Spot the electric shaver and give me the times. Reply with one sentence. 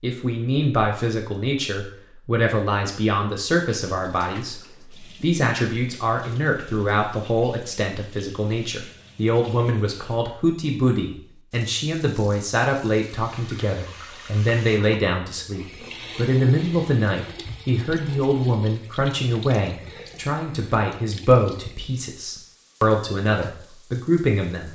The electric shaver can't be heard in this clip.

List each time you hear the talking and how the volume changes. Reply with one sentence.
You can hear the talking from 0.0 to 24.7 s, at a steady volume.